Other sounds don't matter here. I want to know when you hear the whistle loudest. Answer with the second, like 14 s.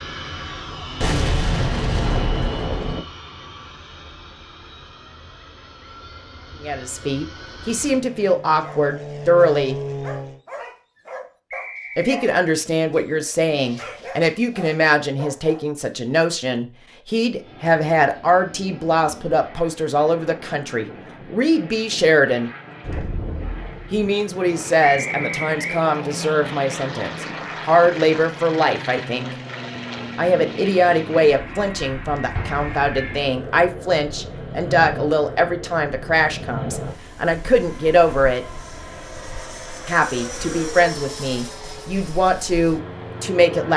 25 s.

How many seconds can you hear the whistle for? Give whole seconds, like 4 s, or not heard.
2 s.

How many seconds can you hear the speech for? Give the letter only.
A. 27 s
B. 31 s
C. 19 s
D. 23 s
B.